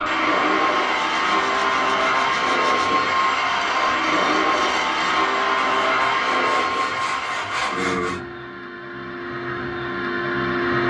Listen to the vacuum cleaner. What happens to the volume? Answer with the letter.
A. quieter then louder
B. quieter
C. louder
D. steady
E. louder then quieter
B.